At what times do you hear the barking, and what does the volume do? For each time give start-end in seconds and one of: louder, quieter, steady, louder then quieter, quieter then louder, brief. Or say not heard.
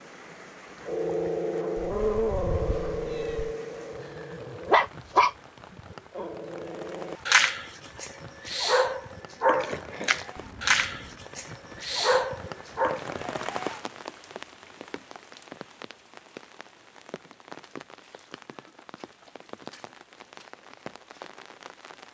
0.8-5.3 quieter then louder
6.2-13.1 steady.